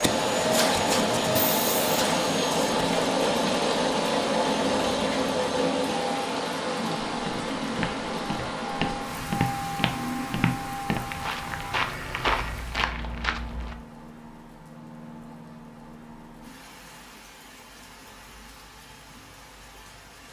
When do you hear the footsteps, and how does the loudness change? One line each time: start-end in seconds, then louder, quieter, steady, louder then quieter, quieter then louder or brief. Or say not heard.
7.2-13.8 louder.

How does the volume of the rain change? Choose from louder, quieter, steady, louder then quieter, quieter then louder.
quieter.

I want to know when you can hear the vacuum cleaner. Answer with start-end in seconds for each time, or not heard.
0.0-12.7.